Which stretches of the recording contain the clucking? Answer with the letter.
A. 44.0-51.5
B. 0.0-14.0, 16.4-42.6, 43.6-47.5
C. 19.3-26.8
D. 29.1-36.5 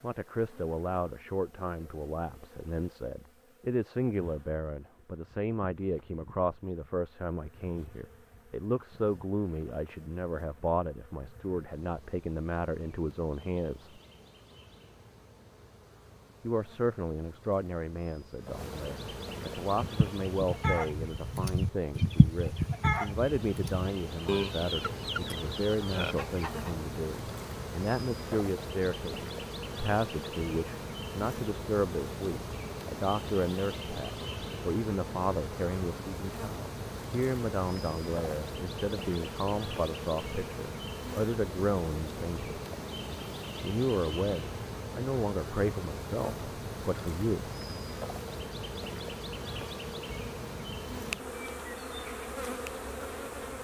C.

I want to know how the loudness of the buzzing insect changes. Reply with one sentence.
The loudness of the buzzing insect goes up.